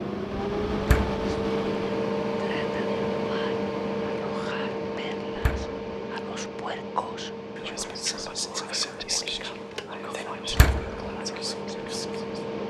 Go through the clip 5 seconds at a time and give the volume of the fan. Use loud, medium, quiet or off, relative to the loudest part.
loud, medium, medium.